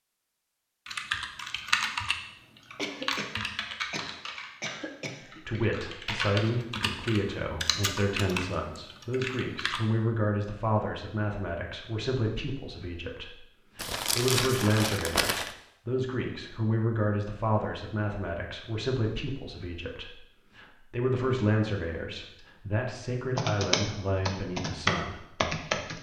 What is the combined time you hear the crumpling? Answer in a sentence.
The crumpling can be heard for 2 seconds in total.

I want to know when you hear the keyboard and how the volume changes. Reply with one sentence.
You can hear the keyboard from 0.8 to 9.8 s, getting quieter then louder; and briefly from 23.4 to 25.9 s.